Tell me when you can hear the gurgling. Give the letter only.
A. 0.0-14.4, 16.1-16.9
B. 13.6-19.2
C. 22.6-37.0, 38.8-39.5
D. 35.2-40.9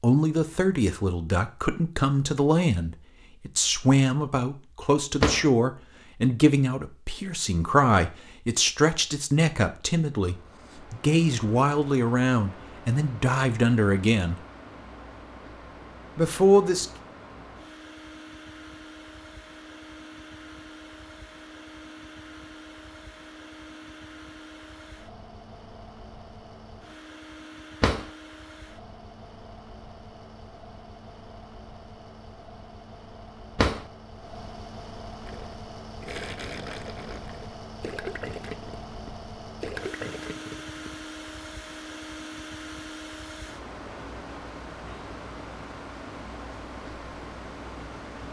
D.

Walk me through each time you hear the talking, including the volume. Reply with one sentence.
You can hear the talking from 0.0 to 14.4 s, at a steady volume; and briefly from 16.1 to 16.9 s.